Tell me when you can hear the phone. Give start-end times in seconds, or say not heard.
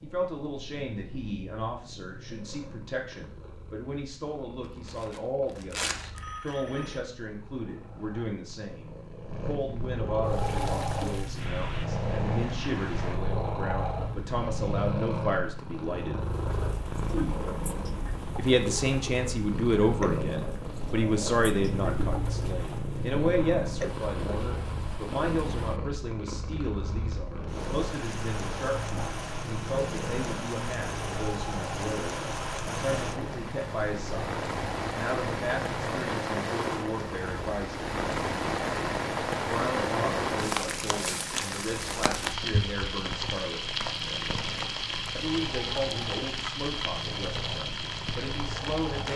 6.1-7.0.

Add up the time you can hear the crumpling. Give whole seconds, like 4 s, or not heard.
2 s.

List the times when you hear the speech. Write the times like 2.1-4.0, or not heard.
0.0-16.2, 18.4-38.0, 39.4-43.7, 45.1-49.1.